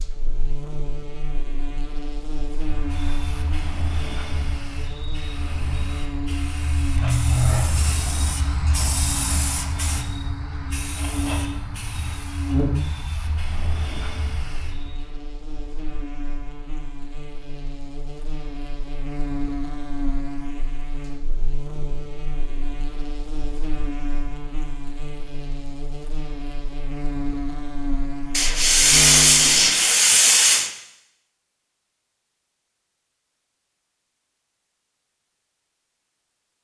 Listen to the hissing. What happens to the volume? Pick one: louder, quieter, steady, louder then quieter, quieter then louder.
louder then quieter.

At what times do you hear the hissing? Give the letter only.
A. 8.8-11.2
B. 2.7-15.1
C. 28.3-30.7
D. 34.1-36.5
B.